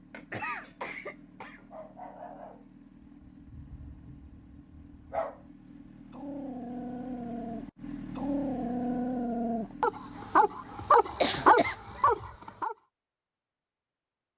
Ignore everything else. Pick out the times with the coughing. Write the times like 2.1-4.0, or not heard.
0.1-1.6, 10.8-12.3.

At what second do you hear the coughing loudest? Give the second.
11 s.